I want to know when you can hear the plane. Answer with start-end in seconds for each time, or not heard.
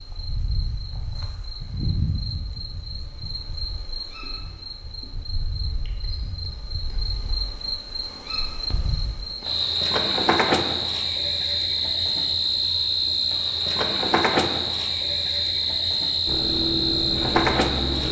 16.2-18.0.